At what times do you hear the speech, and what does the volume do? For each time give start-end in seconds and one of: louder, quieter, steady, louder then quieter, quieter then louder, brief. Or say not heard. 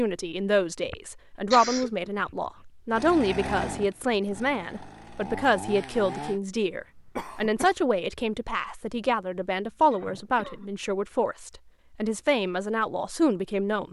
0.0-13.8 steady.